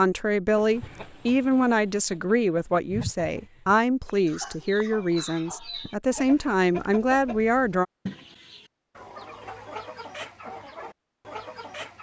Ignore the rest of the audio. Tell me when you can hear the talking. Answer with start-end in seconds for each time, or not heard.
0.0-7.8.